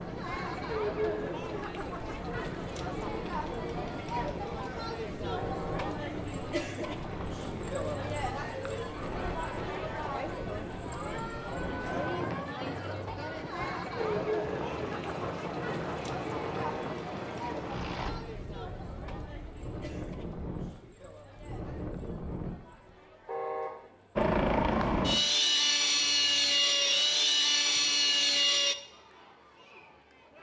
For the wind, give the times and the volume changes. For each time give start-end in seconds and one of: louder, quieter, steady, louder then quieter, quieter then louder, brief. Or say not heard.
0.0-22.9 steady.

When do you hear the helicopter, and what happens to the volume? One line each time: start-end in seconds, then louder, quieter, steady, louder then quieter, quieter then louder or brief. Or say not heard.
14.0-18.1 steady
24.1-28.8 steady.